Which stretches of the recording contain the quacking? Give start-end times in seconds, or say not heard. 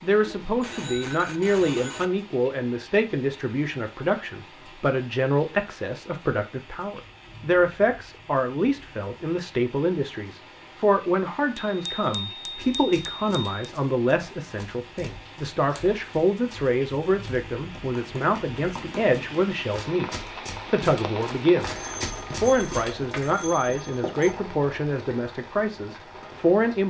not heard.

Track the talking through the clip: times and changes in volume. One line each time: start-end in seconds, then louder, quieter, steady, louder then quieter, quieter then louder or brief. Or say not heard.
0.0-26.8 steady.